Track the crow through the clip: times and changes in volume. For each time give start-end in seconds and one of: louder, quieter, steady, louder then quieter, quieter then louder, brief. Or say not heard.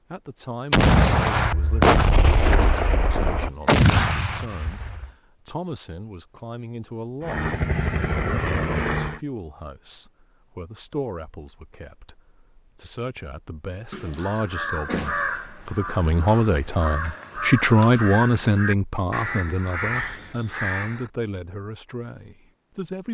13.9-21.1 quieter then louder.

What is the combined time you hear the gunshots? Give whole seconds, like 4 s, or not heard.
4 s.